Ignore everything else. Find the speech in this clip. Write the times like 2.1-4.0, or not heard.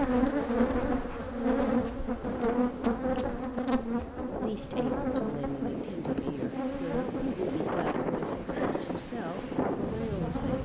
4.2-10.6.